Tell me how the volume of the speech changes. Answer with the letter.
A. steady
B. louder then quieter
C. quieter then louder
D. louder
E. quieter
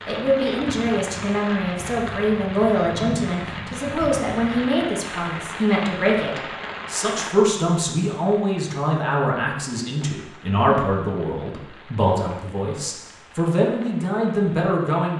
A.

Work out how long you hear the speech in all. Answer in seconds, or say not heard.
15 s.